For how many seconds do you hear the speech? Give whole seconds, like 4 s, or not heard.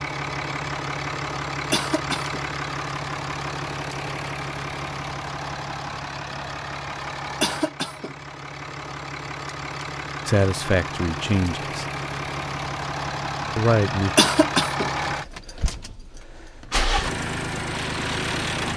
2 s.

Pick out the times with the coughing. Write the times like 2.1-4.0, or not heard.
1.7-2.4, 7.4-8.2, 14.2-14.9.